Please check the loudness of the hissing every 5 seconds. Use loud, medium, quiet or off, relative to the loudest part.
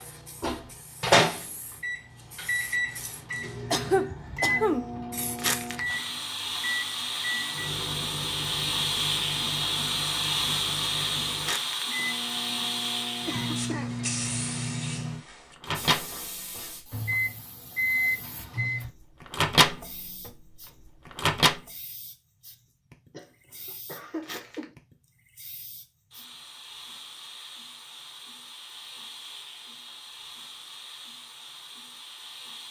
quiet, loud, loud, quiet, quiet, quiet, quiet.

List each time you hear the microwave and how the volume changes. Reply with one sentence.
You can hear the microwave from 0.4 to 21.6 s, getting quieter then louder.